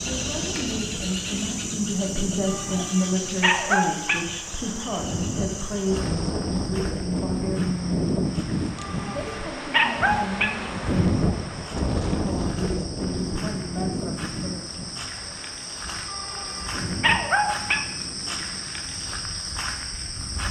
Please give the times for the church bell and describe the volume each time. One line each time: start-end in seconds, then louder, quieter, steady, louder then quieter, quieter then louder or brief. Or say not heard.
not heard.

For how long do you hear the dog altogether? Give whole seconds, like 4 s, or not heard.
5 s.